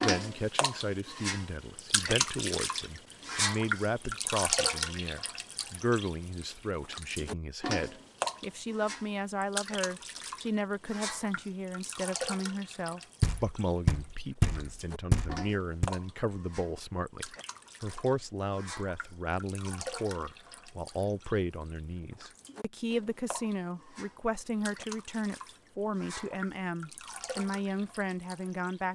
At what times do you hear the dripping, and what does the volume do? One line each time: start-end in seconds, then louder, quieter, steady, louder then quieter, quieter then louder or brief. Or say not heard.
0.0-28.9 quieter.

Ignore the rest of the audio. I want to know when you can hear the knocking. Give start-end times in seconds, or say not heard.
13.2-15.9.